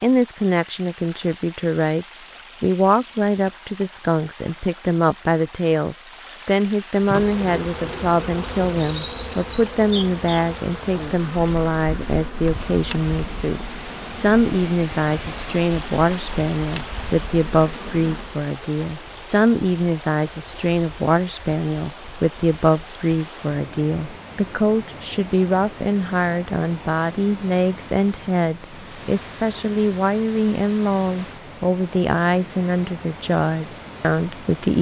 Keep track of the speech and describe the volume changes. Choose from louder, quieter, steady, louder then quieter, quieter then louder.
steady.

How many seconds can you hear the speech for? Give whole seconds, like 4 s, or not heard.
35 s.